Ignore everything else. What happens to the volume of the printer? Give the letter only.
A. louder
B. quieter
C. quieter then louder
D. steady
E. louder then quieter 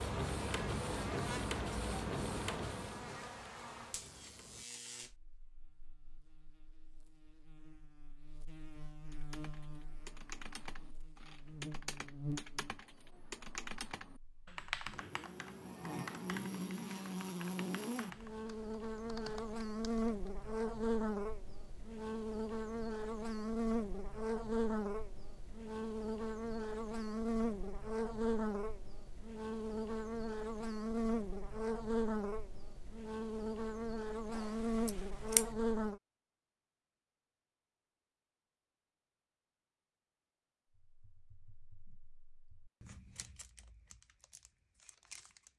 B.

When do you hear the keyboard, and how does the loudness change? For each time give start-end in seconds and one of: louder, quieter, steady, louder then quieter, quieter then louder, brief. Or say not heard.
9.1-20.3 louder then quieter
41.0-45.5 louder then quieter.